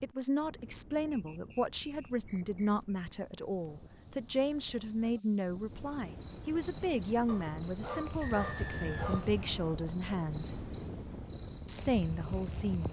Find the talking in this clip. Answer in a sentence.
You can hear the talking from 0.0 to 10.6 s and from 11.7 to 12.8 s.